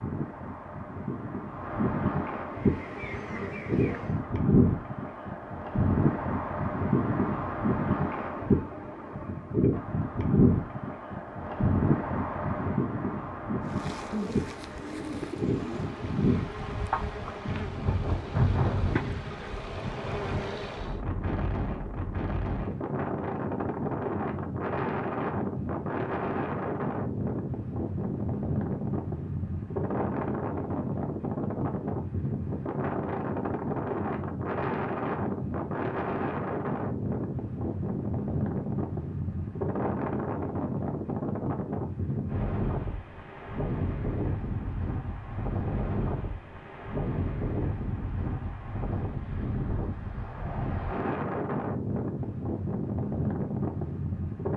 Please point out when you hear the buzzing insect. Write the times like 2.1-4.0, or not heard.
2.5-4.2, 13.6-21.0.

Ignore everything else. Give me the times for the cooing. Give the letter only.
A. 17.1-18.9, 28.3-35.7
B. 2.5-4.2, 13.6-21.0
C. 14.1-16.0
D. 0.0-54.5
C.